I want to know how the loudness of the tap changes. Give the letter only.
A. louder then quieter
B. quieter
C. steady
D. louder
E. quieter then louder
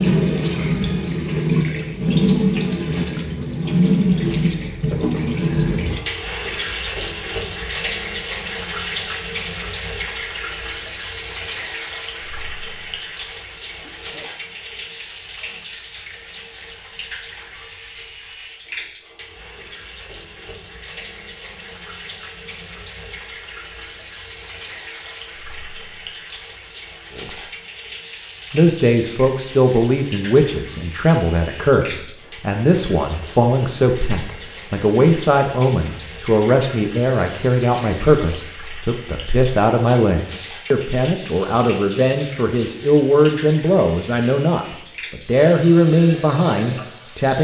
B.